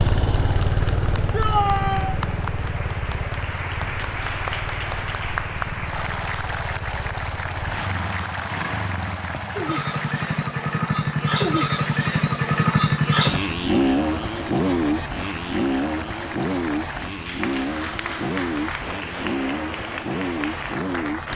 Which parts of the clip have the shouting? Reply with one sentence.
You can hear the shouting from 1.3 to 2.2 s.